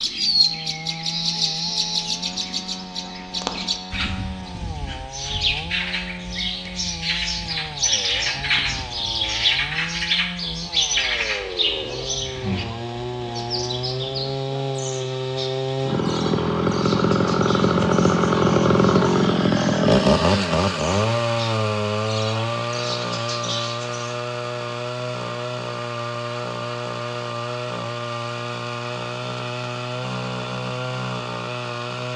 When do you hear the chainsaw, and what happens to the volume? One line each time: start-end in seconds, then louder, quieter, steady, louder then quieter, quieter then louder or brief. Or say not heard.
0.0-32.1 louder then quieter.